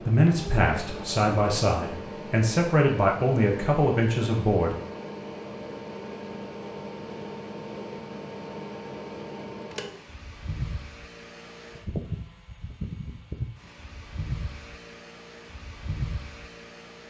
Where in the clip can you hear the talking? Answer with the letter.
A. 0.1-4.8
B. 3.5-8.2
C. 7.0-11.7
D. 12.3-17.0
A.